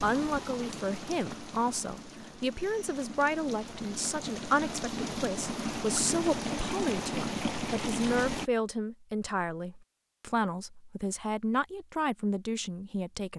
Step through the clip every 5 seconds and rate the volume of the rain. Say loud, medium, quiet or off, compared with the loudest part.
medium, loud, off.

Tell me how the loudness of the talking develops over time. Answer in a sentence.
The volume of the talking stays about the same.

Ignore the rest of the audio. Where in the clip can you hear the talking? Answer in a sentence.
The talking can be heard from 0.0 to 13.3 s.